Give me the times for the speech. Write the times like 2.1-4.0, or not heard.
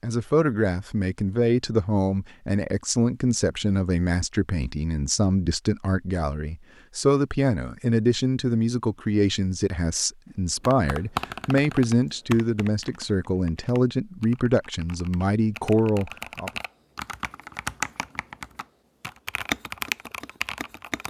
0.0-16.5.